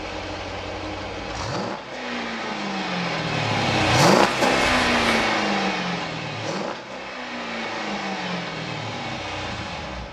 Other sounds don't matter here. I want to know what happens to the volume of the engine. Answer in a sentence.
The volume of the engine goes up, then down.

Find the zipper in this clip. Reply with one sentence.
The zipper can be heard from 4.6 to 5.3 s.